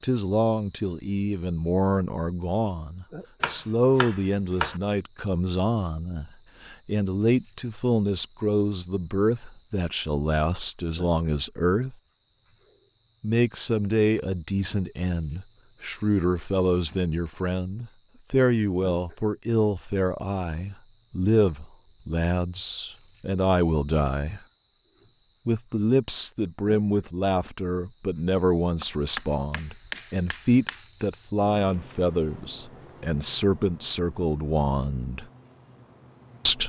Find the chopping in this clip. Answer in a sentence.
You can hear the chopping from 3.4 to 4.8 s and from 28.8 to 30.9 s.